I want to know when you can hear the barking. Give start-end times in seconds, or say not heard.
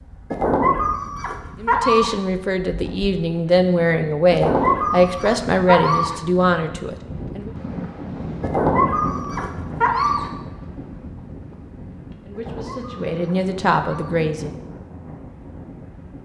0.3-2.1, 4.3-6.2, 8.4-10.3, 12.3-14.2.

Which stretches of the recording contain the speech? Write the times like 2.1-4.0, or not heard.
1.6-7.5, 12.2-14.6.